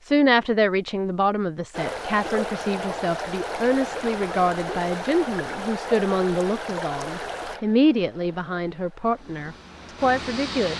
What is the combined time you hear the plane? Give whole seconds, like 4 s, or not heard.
2 s.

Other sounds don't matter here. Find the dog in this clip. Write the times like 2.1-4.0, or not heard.
not heard.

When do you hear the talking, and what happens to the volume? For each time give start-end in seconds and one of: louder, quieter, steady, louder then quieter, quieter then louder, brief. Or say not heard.
0.1-10.7 steady.